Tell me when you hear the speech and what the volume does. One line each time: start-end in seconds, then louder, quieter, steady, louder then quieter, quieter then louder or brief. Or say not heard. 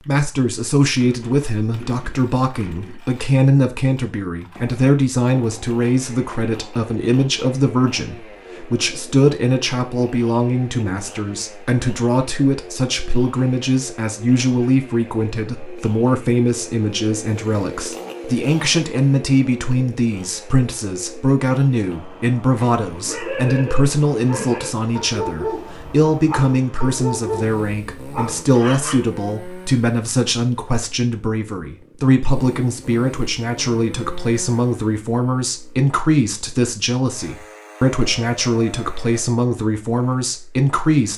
0.1-41.1 steady.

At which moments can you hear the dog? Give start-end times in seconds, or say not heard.
22.6-29.1.